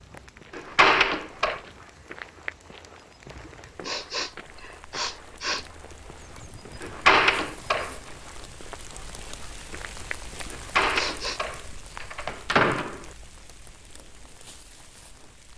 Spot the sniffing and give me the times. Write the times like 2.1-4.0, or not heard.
3.9-5.7, 10.8-11.4.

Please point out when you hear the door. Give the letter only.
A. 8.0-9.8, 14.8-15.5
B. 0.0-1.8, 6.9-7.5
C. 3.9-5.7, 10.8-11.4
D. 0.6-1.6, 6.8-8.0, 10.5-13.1
D.